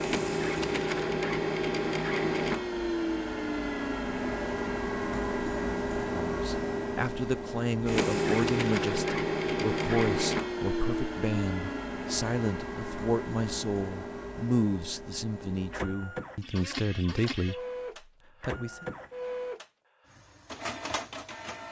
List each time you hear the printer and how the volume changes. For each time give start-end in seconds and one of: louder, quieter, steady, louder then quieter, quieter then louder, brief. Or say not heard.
0.0-21.6 quieter.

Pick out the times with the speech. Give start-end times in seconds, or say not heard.
6.2-17.6, 18.4-18.9.